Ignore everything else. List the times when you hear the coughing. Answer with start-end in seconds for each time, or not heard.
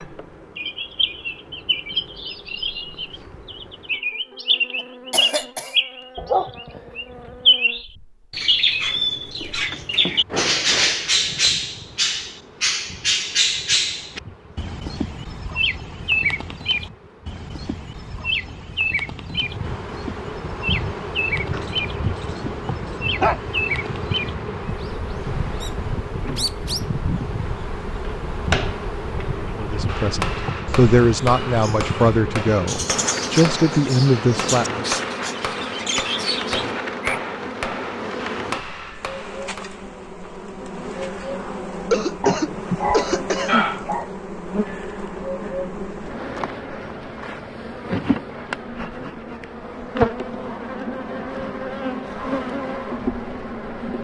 4.8-5.8, 41.9-43.7.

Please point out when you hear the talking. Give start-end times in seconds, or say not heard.
29.6-34.9.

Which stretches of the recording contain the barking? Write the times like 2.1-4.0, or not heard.
6.2-7.3, 21.5-23.4, 42.2-44.1.